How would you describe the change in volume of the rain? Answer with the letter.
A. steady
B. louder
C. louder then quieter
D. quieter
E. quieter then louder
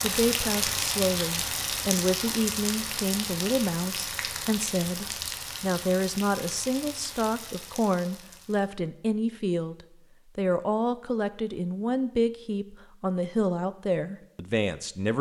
D.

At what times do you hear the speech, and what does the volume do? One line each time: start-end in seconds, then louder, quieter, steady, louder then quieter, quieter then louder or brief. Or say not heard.
0.0-15.1 steady.